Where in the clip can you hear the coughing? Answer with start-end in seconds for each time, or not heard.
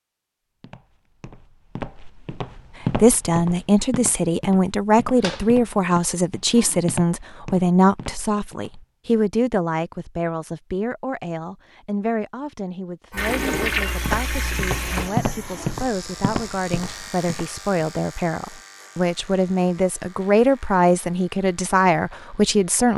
not heard.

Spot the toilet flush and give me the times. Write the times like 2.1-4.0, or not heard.
5.2-6.8, 13.2-15.1.